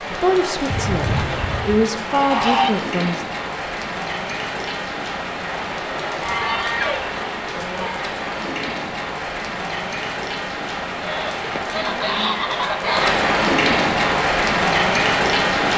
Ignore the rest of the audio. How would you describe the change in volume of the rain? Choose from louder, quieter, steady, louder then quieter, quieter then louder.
louder.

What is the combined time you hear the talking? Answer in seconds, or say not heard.
3 s.